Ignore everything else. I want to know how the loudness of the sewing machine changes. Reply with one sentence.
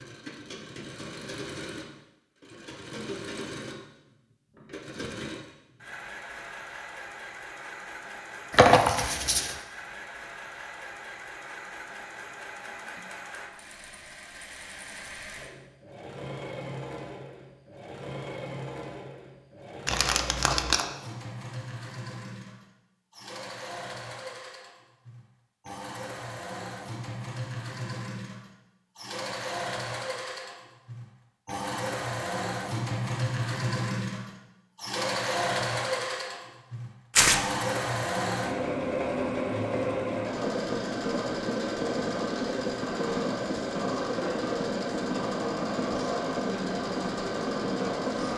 The loudness of the sewing machine goes up.